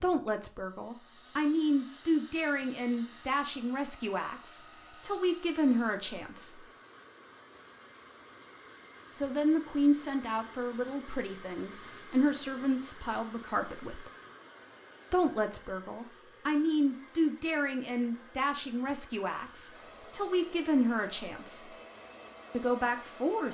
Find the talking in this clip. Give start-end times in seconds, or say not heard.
0.0-6.6, 9.1-14.1, 15.1-21.7, 22.5-23.5.